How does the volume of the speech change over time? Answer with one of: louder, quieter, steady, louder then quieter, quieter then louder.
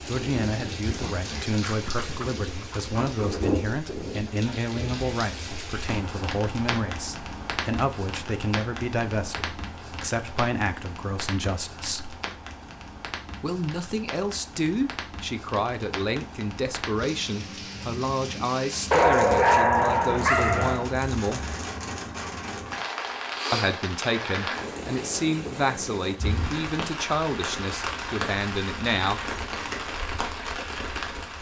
steady.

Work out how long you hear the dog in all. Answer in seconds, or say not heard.
4 s.